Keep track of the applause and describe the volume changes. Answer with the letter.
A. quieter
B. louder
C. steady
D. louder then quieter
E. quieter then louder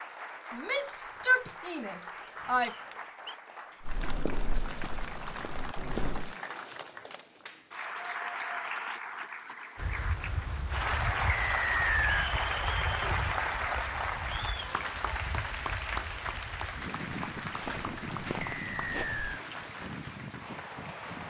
D.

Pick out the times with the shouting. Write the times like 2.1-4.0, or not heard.
0.5-2.8.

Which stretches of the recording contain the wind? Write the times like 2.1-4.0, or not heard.
9.8-21.2.